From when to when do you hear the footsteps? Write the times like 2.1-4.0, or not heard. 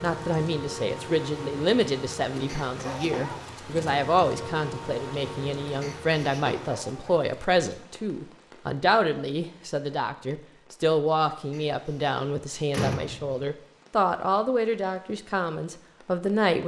not heard.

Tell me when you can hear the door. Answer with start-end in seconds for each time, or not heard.
2.5-3.5, 5.8-6.8, 11.5-13.4.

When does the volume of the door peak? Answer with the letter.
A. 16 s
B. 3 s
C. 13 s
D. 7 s
C.